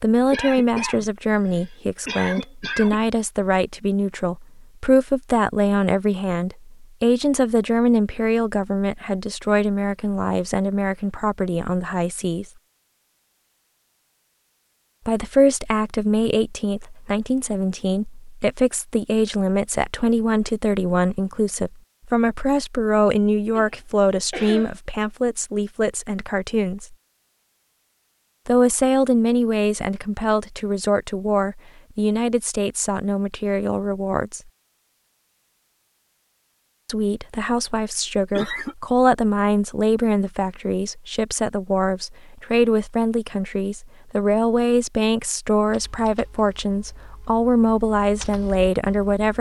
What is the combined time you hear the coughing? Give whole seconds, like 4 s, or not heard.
5 s.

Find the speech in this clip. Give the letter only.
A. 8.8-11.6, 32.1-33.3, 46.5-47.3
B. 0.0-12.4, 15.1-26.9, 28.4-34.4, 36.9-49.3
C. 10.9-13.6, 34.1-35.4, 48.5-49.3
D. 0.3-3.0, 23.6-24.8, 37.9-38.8
B.